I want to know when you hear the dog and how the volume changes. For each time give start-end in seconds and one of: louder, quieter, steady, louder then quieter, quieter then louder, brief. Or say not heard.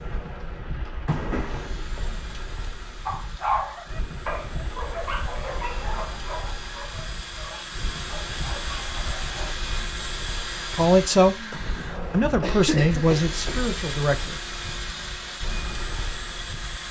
3.0-9.6 quieter.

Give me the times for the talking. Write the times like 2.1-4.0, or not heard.
10.7-14.3.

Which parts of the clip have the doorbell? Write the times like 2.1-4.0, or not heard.
not heard.